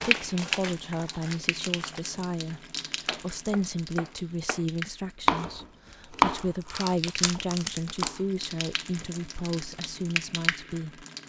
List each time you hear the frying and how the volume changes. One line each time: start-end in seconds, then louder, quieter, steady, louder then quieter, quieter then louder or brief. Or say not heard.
0.0-11.2 quieter then louder.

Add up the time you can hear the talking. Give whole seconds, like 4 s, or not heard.
11 s.